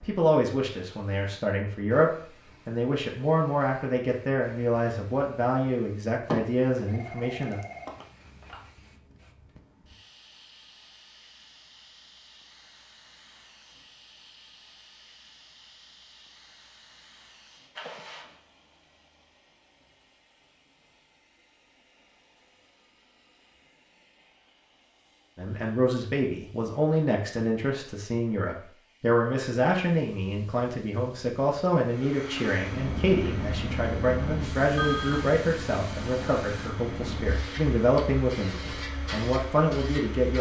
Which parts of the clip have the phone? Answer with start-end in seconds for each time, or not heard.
6.3-8.6, 17.8-18.4, 34.8-35.4.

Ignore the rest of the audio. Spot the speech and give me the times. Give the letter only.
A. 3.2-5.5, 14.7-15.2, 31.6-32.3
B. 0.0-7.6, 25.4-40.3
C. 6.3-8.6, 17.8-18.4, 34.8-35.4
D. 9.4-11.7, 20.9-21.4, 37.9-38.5
B.